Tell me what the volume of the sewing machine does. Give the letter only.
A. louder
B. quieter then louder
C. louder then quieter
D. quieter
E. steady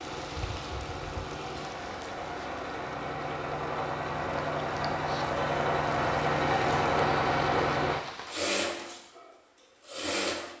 C.